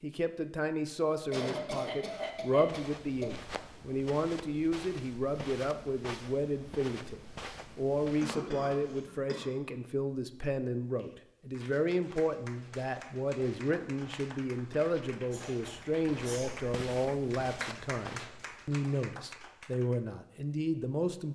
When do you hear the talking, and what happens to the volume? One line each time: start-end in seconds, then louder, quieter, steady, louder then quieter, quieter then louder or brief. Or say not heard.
0.0-21.3 steady.